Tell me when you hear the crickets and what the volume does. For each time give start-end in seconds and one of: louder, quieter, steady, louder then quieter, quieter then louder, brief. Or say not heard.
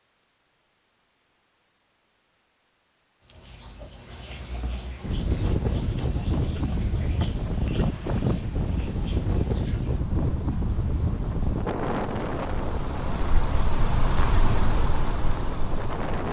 3.2-16.2 louder.